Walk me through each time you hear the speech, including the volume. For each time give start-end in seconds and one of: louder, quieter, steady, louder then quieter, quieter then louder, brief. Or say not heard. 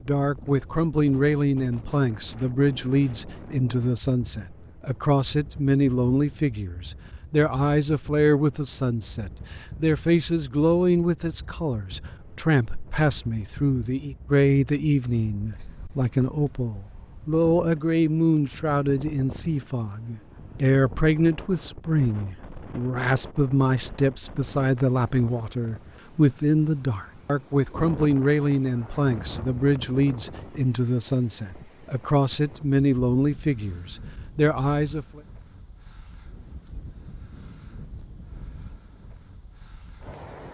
0.1-35.2 steady.